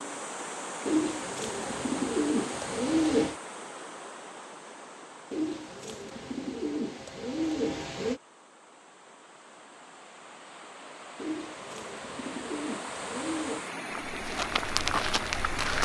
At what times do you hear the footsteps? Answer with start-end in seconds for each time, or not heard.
13.9-15.7.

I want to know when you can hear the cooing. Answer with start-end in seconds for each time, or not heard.
0.8-3.4, 5.3-8.2, 11.2-13.7.